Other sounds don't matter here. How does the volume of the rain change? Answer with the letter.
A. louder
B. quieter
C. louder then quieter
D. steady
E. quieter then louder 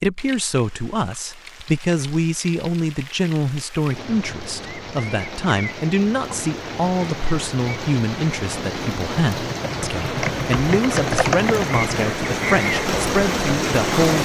A.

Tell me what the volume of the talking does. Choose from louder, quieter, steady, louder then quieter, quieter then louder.
steady.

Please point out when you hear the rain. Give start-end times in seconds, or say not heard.
0.0-14.2.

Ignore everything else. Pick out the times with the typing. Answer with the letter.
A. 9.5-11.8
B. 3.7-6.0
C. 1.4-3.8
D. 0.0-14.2
A.